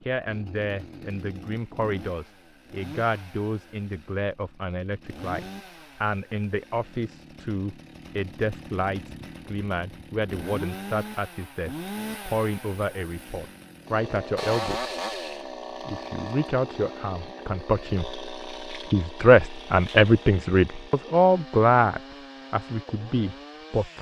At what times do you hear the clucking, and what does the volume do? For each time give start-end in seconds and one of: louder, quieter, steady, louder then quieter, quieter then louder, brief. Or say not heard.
not heard.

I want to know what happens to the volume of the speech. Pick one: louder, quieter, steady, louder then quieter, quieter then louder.
louder.